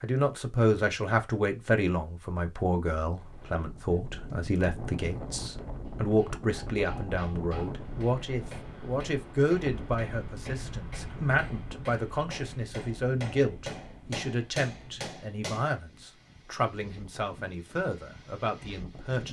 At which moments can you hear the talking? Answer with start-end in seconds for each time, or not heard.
0.0-19.2.